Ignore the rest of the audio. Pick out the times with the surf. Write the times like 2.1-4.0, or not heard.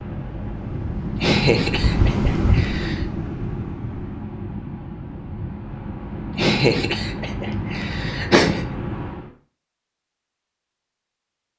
0.0-9.3.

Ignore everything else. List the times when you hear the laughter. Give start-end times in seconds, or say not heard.
1.1-3.0, 6.3-8.7.